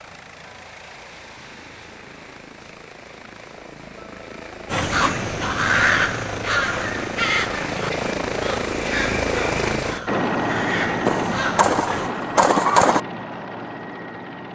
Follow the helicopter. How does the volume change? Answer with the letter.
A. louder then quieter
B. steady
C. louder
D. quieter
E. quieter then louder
A.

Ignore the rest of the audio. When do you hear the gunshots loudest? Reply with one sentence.
The volume of the gunshots peaks at 13 seconds.